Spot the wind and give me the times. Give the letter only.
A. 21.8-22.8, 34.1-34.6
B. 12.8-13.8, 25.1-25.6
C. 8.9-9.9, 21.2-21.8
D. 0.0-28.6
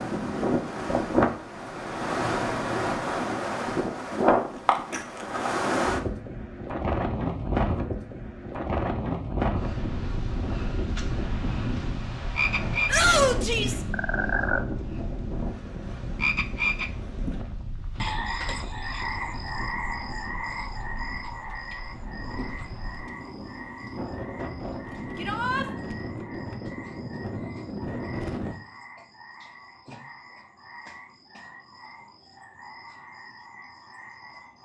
D.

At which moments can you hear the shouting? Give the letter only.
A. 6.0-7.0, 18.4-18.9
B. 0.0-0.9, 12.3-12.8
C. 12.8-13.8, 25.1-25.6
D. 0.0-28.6
C.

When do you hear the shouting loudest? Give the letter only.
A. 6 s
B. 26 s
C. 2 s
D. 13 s
D.